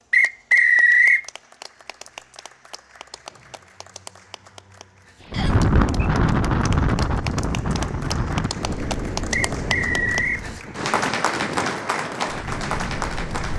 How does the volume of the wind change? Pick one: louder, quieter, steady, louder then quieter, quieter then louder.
quieter.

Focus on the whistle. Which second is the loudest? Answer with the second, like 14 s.
1 s.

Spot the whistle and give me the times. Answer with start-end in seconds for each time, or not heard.
0.1-1.2, 5.3-6.1, 9.3-10.4.